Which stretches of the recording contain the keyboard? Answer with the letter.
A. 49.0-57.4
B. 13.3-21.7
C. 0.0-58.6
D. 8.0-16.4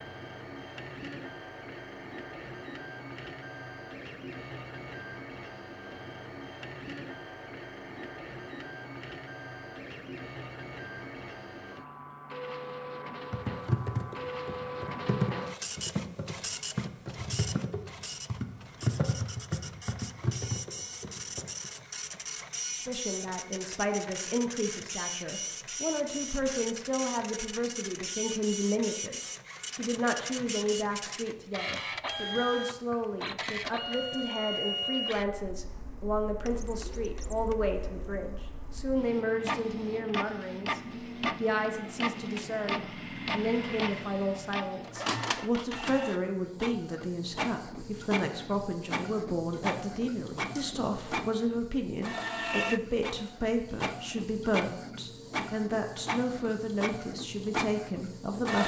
B.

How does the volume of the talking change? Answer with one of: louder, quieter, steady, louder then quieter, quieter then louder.
steady.